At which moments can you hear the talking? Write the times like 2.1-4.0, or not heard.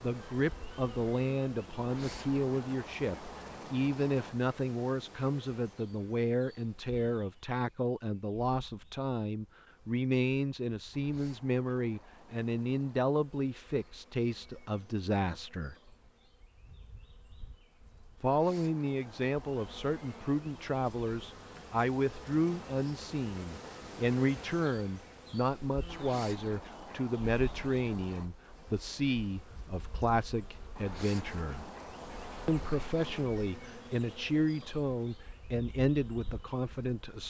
0.0-15.8, 18.2-31.6, 32.5-37.2.